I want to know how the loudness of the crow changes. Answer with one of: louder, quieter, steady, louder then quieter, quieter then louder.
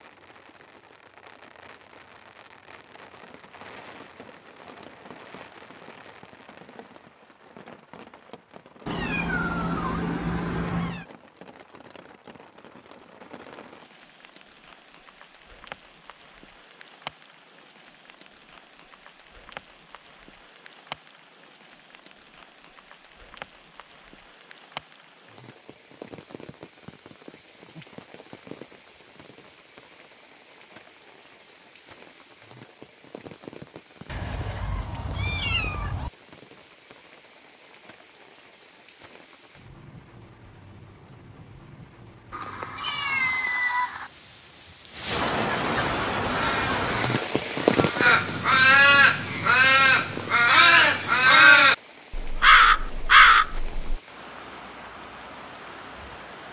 louder.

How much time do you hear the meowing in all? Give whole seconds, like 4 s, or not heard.
6 s.